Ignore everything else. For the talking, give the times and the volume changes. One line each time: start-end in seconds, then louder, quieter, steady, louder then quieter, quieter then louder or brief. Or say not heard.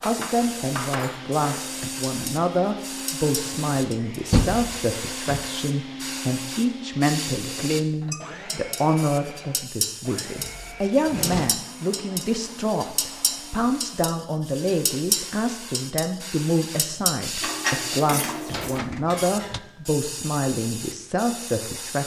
0.0-22.0 steady.